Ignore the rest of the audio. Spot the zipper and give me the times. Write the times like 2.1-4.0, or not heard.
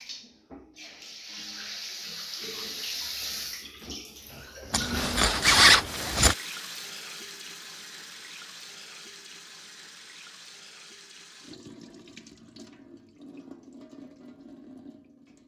4.7-6.3.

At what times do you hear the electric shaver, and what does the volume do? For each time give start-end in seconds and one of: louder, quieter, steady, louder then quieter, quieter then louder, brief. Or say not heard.
not heard.